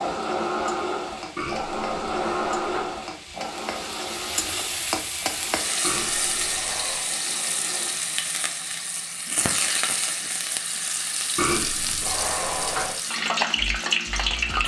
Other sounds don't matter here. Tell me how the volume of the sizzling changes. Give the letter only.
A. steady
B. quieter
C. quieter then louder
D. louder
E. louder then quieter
D.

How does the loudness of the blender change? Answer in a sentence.
The volume of the blender goes down.